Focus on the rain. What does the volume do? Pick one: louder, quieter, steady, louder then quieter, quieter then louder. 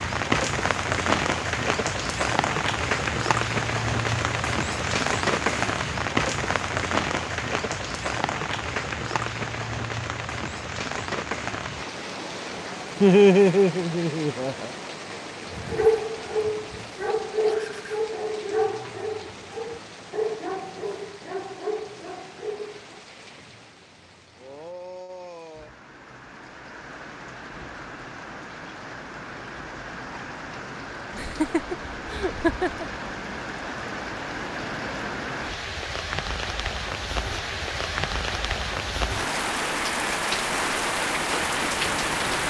quieter then louder.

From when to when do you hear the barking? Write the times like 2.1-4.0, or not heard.
15.5-23.0.